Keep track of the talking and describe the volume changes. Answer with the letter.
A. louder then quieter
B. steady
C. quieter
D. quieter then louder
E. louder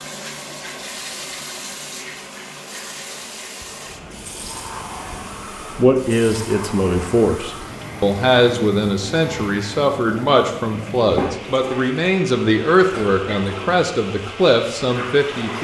B.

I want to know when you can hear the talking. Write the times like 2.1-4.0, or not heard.
5.8-15.6.